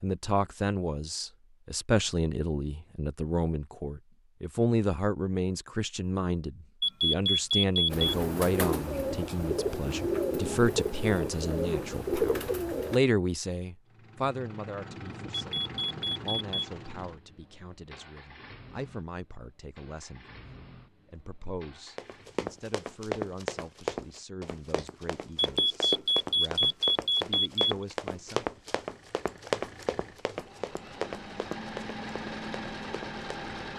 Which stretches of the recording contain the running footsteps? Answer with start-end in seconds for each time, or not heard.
21.9-33.5.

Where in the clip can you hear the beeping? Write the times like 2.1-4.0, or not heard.
6.8-8.1, 15.4-16.6, 25.4-27.8.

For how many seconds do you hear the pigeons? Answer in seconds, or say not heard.
5 s.